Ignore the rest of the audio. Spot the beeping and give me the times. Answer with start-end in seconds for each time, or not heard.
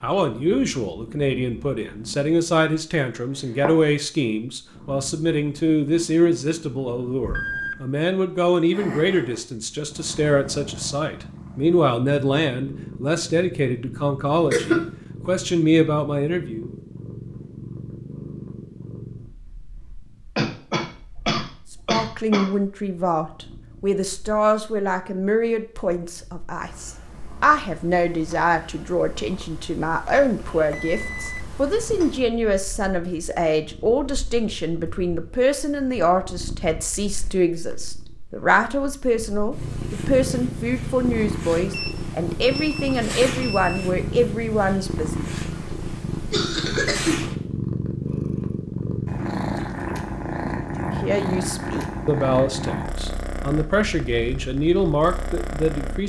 7.3-7.8, 30.7-32.0, 41.7-43.9.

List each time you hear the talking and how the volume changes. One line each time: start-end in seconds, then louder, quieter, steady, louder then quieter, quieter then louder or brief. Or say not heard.
0.0-16.7 steady
21.7-45.3 steady
50.8-56.0 louder.